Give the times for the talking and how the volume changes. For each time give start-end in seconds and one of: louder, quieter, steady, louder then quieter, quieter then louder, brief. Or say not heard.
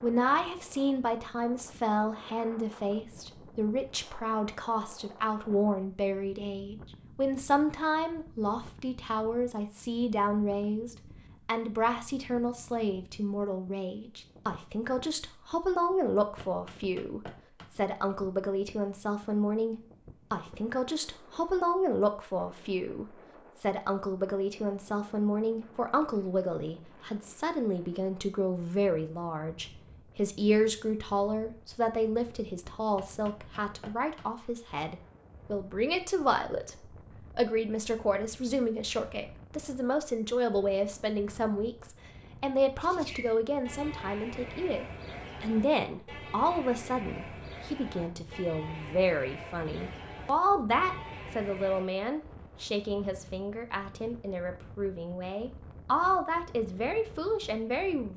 0.0-58.1 steady.